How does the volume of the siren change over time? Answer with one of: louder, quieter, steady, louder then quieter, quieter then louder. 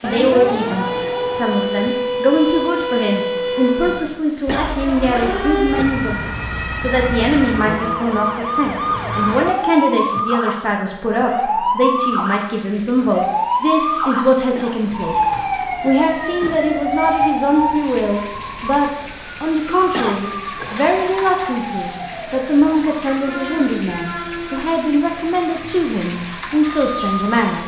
quieter.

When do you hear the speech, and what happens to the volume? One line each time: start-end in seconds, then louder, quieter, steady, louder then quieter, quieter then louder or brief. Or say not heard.
0.0-27.6 steady.